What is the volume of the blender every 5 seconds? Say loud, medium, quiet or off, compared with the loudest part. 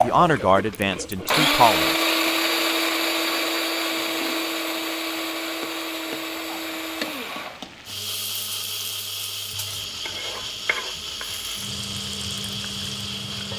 loud, medium, medium.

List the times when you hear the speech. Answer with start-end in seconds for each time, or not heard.
0.0-1.9.